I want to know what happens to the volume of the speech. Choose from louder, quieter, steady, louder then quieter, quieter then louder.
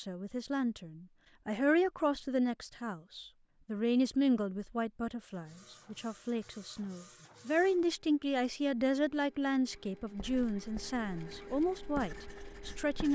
steady.